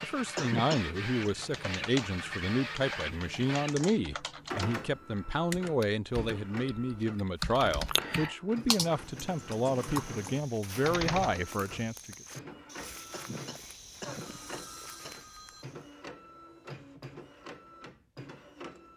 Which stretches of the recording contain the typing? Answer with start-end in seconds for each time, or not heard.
1.2-11.4.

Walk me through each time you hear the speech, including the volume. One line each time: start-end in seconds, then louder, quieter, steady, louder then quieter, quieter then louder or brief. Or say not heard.
0.0-12.2 steady.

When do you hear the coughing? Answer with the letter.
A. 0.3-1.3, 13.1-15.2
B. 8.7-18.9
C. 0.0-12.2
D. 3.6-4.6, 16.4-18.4
A.